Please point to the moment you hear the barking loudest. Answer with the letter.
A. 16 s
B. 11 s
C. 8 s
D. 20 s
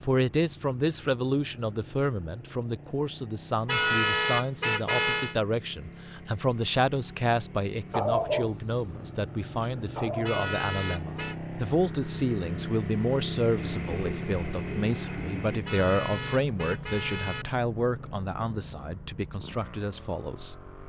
C.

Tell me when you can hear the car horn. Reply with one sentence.
The car horn can be heard from 3.6 to 5.3 s, from 10.2 to 11.3 s and from 15.7 to 17.4 s.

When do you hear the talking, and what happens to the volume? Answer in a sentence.
You can hear the talking from 0.0 to 20.6 s, at a steady volume.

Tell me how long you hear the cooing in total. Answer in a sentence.
The cooing can be heard for 2 seconds in total.